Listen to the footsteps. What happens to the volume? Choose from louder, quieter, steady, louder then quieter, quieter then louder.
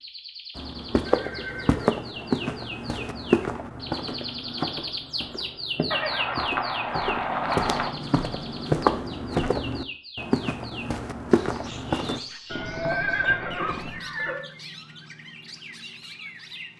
quieter then louder.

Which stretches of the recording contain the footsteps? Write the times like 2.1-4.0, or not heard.
0.6-12.2.